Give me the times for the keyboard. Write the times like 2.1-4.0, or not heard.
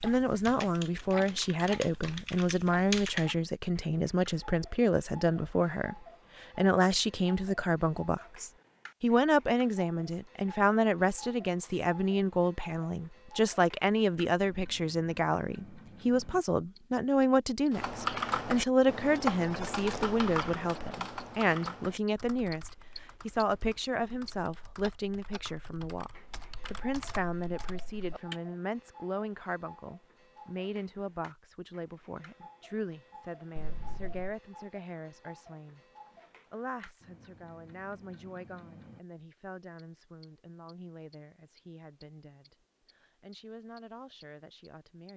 0.0-3.4, 17.7-28.4.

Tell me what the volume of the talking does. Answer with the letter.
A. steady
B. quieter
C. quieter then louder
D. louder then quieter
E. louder
B.